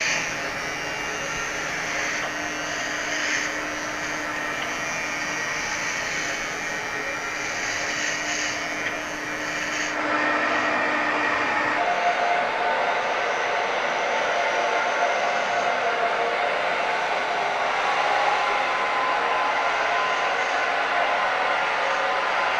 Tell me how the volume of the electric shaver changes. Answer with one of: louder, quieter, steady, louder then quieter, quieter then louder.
quieter.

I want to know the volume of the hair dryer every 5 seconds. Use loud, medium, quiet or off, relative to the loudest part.
medium, medium, loud, loud, loud.